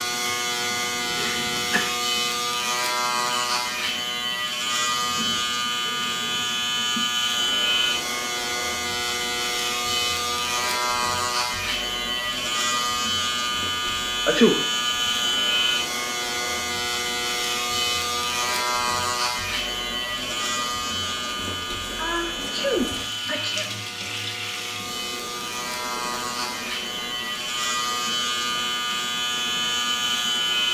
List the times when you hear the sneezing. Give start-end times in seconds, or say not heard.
1.1-1.8, 14.2-14.7, 21.9-23.6.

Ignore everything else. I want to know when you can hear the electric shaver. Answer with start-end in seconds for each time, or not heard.
0.0-30.6.